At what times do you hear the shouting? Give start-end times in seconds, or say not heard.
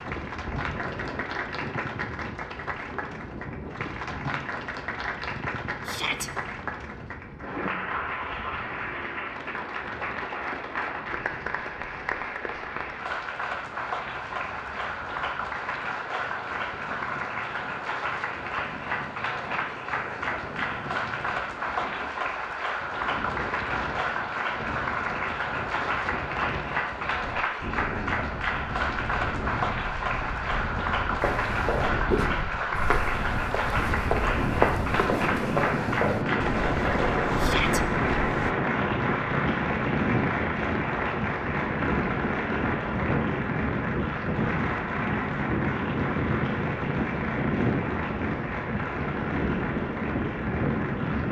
5.8-6.3, 37.4-37.8.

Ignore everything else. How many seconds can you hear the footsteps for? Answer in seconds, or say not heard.
7 s.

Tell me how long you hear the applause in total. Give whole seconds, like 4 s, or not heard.
51 s.